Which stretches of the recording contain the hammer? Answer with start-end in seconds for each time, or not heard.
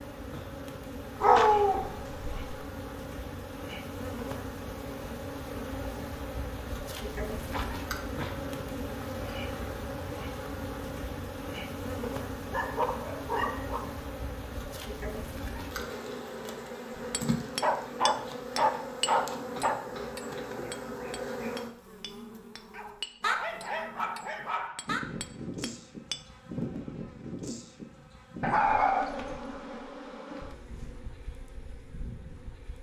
17.1-26.2.